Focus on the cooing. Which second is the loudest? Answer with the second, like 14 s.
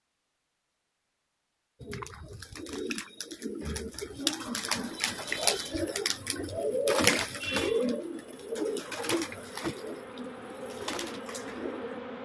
7 s.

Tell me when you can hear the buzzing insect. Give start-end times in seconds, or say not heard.
4.8-12.2.